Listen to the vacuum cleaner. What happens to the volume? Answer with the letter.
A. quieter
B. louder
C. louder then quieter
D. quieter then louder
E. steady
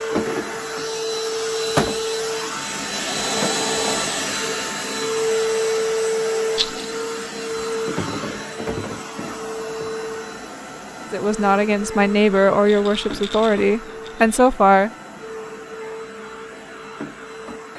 A.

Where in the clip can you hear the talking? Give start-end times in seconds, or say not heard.
11.1-14.9.